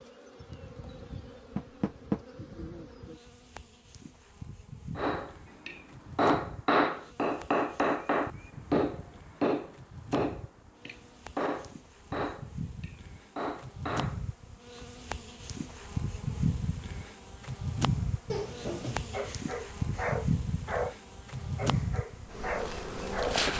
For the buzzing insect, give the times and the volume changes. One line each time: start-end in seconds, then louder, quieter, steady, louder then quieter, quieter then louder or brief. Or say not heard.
0.0-23.5 louder.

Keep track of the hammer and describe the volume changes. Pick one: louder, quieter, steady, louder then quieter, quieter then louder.
quieter.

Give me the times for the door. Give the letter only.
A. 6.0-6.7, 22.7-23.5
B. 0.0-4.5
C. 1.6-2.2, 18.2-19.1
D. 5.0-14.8
C.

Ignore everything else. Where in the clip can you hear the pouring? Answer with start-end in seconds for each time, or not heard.
not heard.